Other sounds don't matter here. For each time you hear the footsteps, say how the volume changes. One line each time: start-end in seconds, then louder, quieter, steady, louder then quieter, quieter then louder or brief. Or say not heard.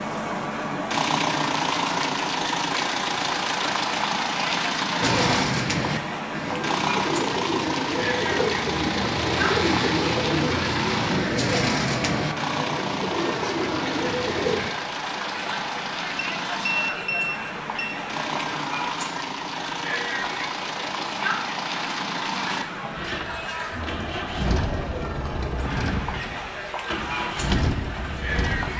not heard.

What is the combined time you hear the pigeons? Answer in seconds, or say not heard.
10 s.